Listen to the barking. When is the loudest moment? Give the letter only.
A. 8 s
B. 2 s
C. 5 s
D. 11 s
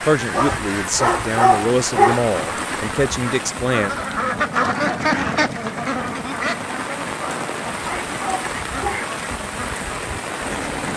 B.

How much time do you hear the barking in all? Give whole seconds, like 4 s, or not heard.
4 s.